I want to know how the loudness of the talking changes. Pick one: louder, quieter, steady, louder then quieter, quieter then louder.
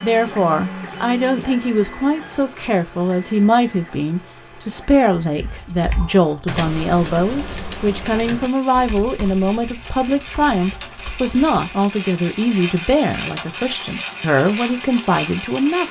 steady.